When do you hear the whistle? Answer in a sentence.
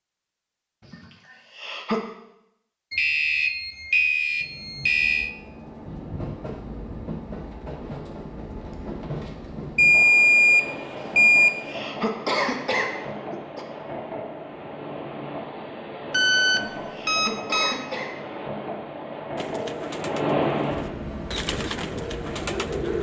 The whistle can't be heard in this clip.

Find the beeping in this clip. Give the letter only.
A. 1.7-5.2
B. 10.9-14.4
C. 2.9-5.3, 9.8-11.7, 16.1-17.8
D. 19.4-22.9
C.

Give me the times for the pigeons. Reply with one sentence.
You can hear the pigeons from 19.4 to 22.9 s.